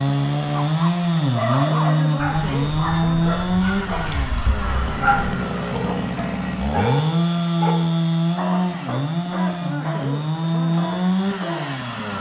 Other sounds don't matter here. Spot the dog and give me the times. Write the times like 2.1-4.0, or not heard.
0.5-11.7.